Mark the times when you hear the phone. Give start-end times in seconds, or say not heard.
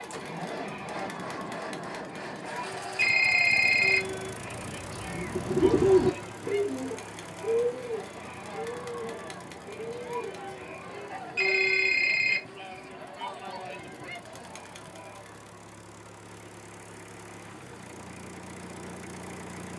3.0-4.0, 11.3-12.4.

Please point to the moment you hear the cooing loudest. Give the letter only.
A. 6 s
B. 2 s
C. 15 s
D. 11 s
A.